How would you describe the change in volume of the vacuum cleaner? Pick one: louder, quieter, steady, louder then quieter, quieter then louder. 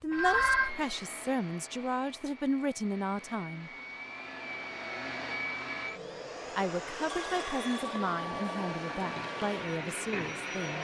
louder.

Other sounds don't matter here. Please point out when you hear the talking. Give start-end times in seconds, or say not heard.
0.0-3.7, 6.5-10.7.